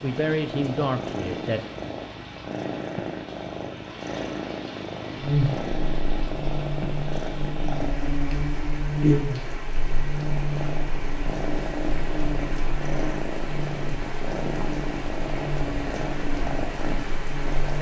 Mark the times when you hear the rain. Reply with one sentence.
You can hear the rain from 0.0 to 17.7 s.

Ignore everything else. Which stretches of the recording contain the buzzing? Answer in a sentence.
You can hear the buzzing from 5.2 to 17.7 s.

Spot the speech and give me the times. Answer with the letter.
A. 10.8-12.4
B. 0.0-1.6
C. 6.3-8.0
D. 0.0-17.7
B.